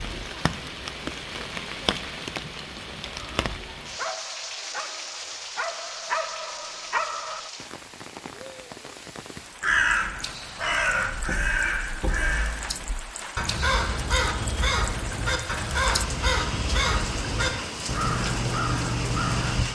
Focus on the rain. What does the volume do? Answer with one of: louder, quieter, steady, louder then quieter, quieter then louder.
quieter then louder.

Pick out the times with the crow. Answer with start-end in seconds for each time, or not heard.
9.6-19.6.